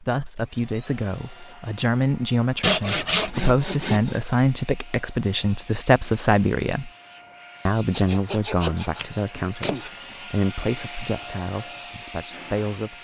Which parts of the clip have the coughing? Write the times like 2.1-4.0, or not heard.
not heard.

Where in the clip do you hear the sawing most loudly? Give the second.
3 s.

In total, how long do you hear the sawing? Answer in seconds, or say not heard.
4 s.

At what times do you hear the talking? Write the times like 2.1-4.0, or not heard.
0.0-6.9, 7.7-12.9.